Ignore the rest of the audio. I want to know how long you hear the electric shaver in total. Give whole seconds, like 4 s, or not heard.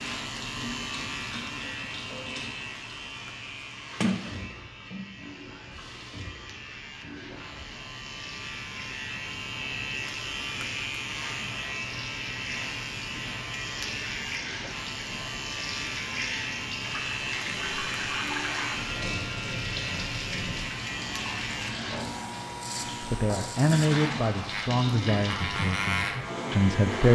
27 s.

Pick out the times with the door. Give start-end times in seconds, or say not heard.
4.0-5.2.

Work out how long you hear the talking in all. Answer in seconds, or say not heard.
4 s.